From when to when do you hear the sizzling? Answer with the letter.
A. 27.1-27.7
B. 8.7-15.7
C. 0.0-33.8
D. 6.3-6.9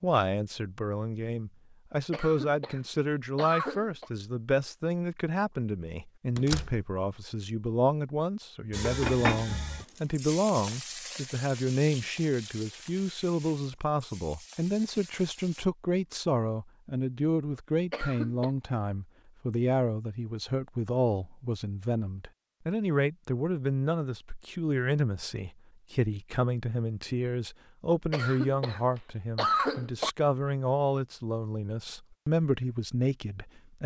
B.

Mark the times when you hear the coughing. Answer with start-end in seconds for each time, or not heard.
2.1-4.1, 17.9-18.5, 28.1-30.1.